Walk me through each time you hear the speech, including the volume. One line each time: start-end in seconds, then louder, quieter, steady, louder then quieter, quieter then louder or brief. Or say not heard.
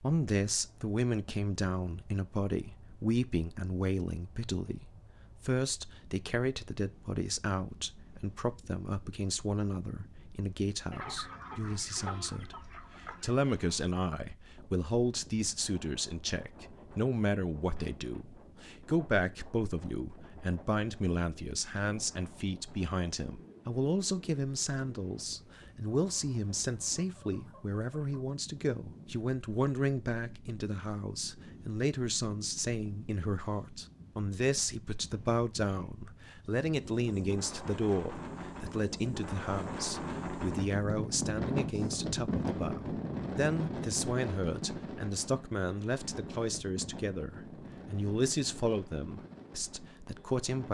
0.0-50.6 steady.